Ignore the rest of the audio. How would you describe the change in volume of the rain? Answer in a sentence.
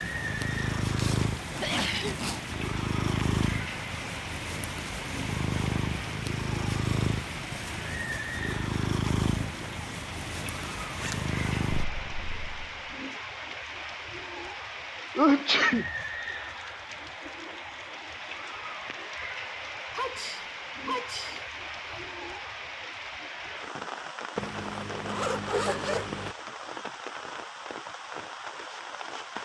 The loudness of the rain stays about the same.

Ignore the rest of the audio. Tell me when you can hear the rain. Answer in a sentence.
You can hear the rain from 0.0 to 29.4 s.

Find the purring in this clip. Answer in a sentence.
You can hear the purring from 0.0 to 12.9 s.